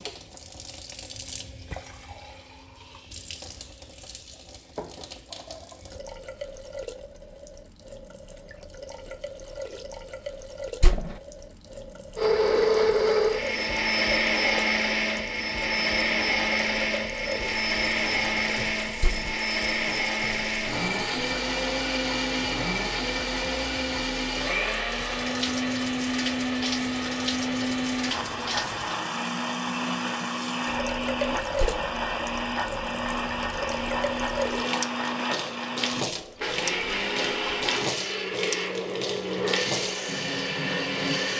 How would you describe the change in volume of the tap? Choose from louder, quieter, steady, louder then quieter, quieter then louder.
louder.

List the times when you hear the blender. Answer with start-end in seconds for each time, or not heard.
12.2-41.3.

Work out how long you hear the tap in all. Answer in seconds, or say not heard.
41 s.